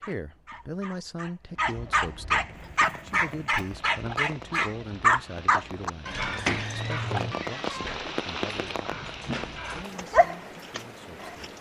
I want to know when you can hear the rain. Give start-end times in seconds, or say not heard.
2.5-11.5.